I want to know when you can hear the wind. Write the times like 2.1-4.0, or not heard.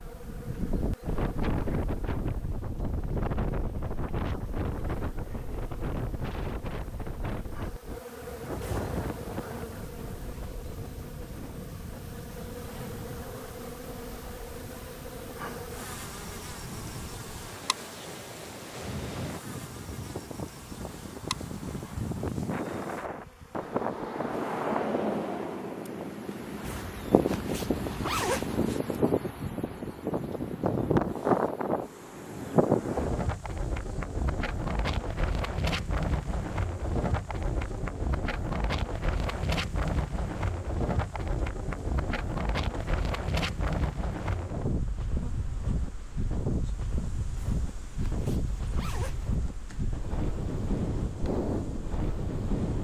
0.0-52.7.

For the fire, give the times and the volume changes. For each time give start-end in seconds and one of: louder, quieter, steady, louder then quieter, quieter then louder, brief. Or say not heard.
not heard.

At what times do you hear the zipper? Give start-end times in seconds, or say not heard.
8.6-9.0, 26.6-28.6, 47.4-49.4.